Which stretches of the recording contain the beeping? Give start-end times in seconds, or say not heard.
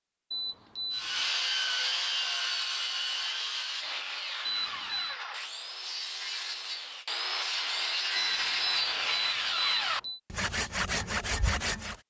0.3-1.4, 4.5-5.2, 8.2-10.2.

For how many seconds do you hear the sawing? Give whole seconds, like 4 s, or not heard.
11 s.